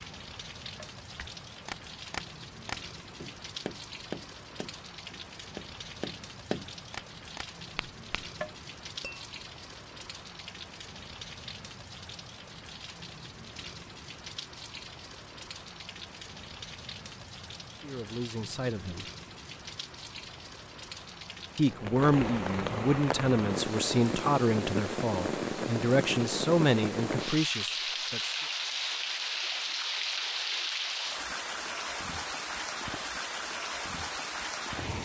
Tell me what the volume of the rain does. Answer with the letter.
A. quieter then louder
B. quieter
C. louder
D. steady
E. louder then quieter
C.